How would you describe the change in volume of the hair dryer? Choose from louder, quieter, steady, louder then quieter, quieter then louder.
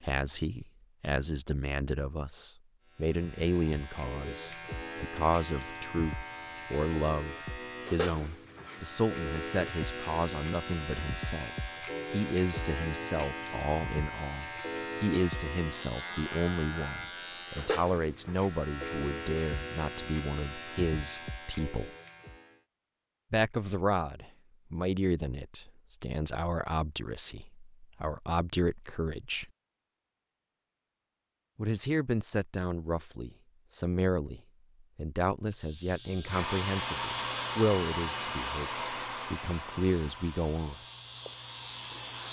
quieter.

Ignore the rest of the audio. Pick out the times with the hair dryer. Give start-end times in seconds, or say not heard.
36.2-42.2.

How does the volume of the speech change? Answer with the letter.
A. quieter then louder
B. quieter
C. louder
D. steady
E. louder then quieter
D.